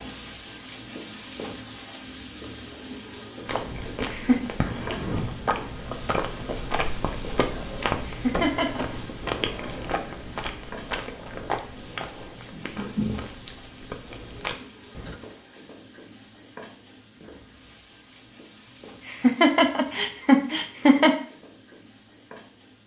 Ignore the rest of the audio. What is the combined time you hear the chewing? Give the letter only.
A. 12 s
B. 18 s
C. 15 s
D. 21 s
A.